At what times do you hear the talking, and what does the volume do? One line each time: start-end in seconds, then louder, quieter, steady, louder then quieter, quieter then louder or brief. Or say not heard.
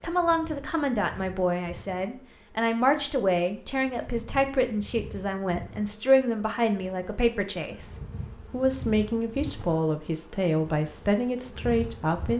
0.0-12.3 steady.